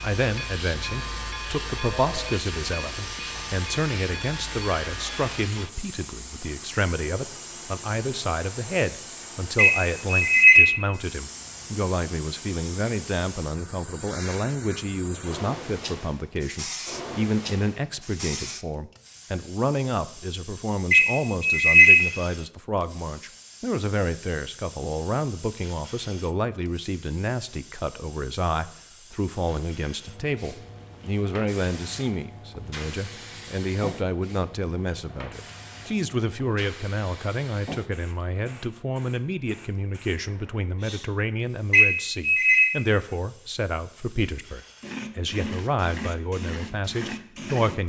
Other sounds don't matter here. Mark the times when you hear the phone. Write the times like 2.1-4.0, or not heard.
9.6-10.6, 20.9-21.9, 41.7-42.6.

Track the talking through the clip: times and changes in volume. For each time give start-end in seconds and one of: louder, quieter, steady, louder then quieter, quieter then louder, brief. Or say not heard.
0.0-47.8 steady.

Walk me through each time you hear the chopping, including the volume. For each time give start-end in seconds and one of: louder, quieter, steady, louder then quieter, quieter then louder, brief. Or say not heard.
not heard.